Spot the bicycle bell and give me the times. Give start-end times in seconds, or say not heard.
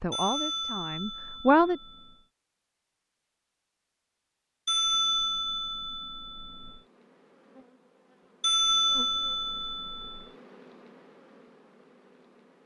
0.1-2.2, 4.7-6.8, 8.4-10.2.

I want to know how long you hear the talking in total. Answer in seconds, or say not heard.
2 s.